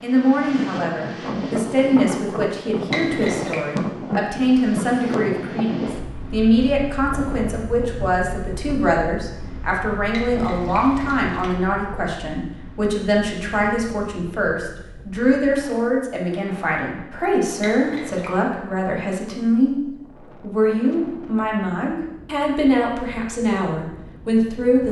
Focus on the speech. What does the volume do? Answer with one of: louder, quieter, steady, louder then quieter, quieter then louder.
steady.